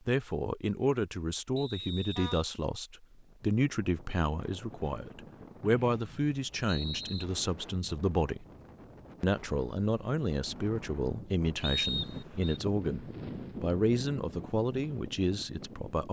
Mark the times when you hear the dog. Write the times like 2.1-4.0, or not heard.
not heard.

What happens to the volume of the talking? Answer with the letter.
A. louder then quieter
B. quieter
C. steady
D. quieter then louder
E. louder
C.